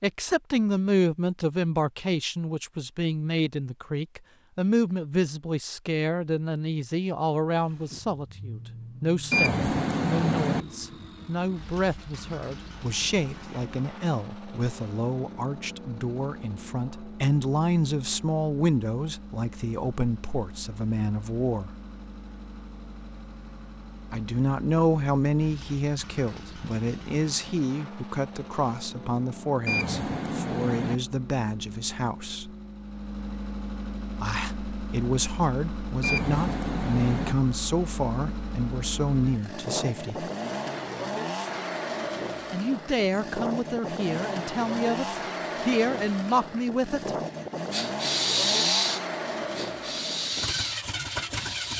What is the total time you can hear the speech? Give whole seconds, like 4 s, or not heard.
41 s.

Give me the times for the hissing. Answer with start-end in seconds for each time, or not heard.
47.7-51.7.